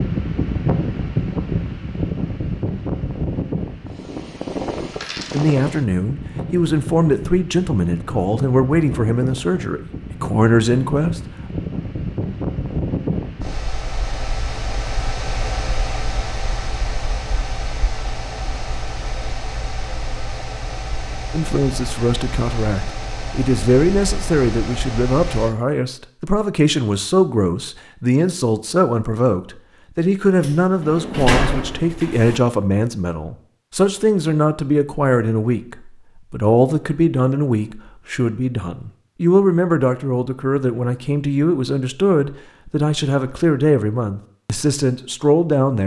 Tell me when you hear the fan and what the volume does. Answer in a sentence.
The fan can be heard from 0.0 to 25.6 s, getting quieter.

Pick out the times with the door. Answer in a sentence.
You can hear the door from 30.4 to 32.4 s.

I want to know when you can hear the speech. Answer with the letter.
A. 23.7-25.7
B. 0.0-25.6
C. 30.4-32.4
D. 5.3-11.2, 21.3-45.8
D.